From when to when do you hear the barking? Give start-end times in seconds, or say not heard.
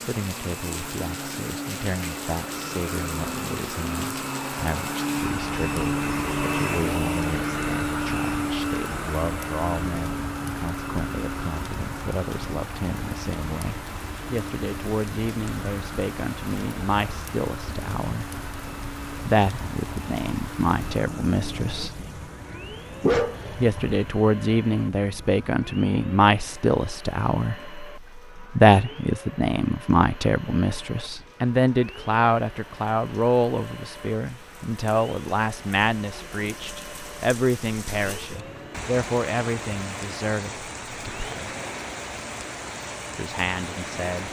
23.0-24.0.